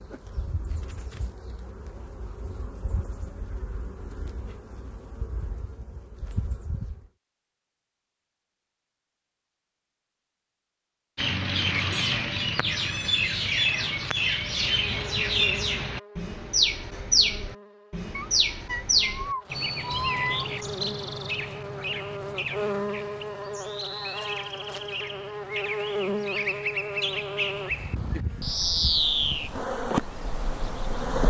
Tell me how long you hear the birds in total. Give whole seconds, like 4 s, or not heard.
20 s.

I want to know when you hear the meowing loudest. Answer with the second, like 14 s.
20 s.